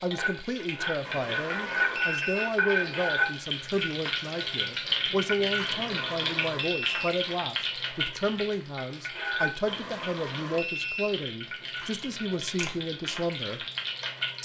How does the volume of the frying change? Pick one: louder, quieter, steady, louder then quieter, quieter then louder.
quieter.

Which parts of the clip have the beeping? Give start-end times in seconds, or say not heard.
1.0-2.5, 5.7-7.2, 9.7-11.2.